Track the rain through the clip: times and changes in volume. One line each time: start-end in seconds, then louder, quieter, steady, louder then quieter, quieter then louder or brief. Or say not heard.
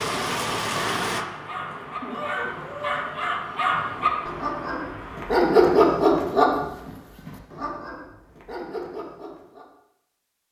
0.0-5.3 quieter.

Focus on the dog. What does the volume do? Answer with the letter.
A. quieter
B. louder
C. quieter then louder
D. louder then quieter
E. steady
D.